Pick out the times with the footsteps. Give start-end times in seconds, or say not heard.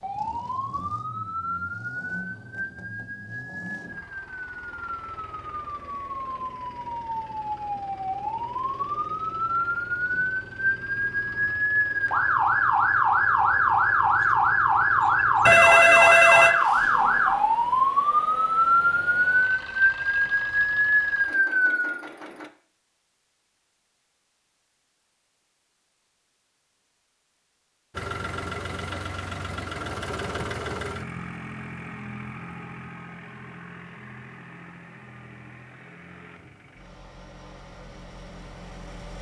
not heard.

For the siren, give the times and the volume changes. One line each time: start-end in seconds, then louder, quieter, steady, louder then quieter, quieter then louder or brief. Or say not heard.
0.0-22.0 louder.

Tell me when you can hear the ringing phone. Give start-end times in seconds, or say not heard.
15.4-16.6.